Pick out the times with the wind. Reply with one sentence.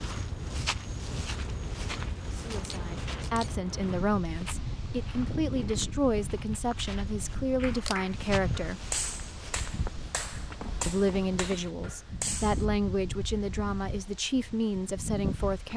The wind can be heard from 0.0 to 15.7 s.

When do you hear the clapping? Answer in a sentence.
The clapping can be heard from 7.5 to 12.7 s.